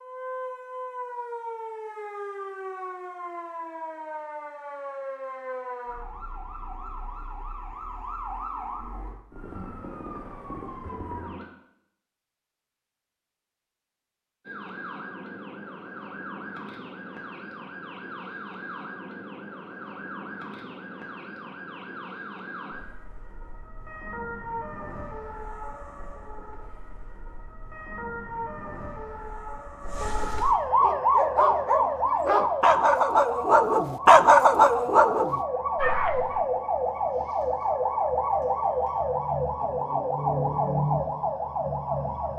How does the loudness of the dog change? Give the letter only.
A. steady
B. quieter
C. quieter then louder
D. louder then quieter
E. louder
D.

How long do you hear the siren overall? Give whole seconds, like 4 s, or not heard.
39 s.